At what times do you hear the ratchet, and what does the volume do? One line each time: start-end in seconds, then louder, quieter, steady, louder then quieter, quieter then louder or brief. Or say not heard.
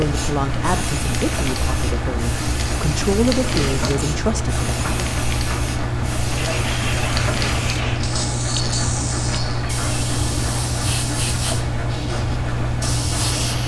not heard.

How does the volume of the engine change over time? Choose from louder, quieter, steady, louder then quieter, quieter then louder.
steady.